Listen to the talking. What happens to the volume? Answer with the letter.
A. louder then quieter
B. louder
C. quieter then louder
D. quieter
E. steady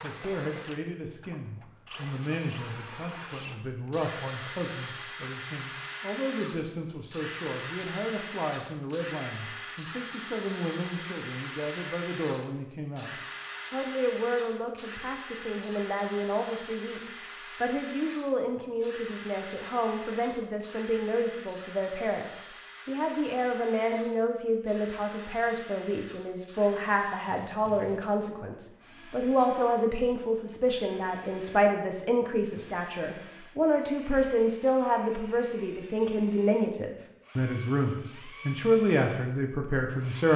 B.